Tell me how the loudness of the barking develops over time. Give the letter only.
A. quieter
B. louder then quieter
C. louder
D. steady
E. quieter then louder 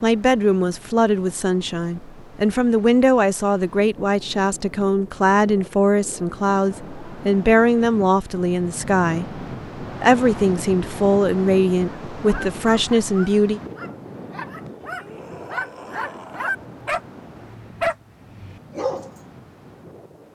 C.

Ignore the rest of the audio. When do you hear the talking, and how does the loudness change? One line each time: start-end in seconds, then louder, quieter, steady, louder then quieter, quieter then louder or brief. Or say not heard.
0.0-13.6 steady.